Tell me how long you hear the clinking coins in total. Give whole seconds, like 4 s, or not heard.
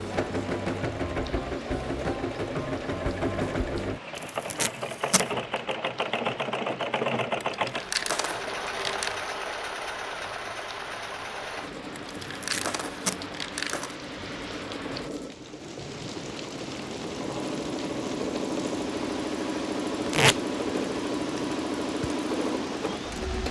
4 s.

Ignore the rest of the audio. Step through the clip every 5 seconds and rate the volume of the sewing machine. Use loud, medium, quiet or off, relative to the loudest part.
loud, loud, medium, loud, loud.